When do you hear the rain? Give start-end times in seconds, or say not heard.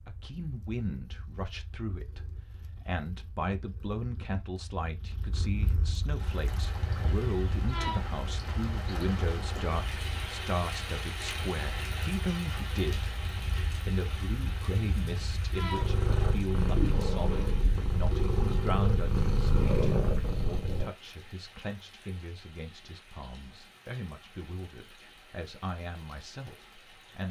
6.2-27.2.